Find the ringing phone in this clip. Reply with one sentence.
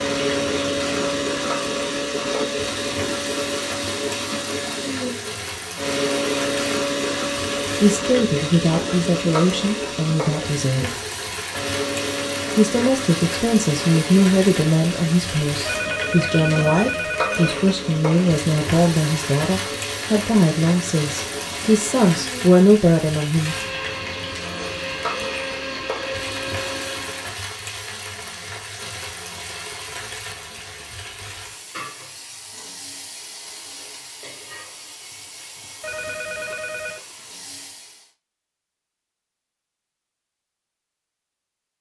You can hear the ringing phone from 15.7 to 17.6 s and from 35.8 to 37.0 s.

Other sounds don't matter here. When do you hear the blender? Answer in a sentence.
You can hear the blender from 0.0 to 27.3 s.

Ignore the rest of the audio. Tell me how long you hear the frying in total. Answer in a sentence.
You can hear the frying for 38 seconds altogether.